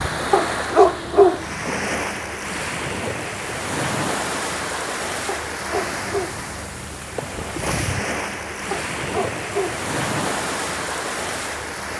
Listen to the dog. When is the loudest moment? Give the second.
1 s.